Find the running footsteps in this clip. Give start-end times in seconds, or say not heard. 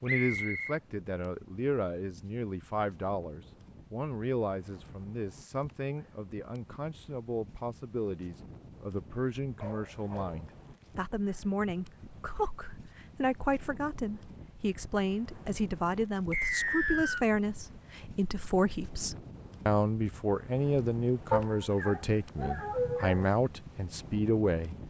not heard.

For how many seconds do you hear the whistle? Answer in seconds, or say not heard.
2 s.